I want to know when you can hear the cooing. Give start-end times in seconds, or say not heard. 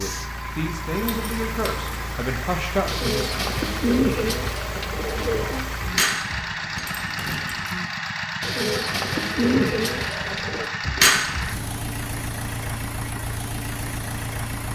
2.9-5.7, 8.4-10.7.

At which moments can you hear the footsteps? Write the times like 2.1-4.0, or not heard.
not heard.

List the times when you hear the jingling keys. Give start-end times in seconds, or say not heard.
0.9-2.1, 5.8-7.8, 10.8-11.7.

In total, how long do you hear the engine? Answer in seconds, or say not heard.
15 s.